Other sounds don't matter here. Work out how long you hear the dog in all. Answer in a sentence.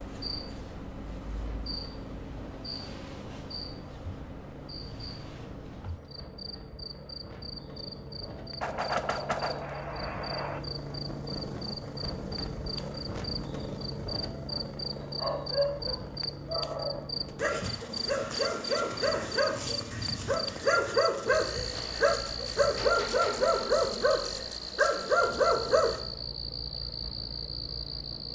The dog can be heard for 11 seconds in total.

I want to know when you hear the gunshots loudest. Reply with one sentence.
The volume of the gunshots peaks at 9 seconds.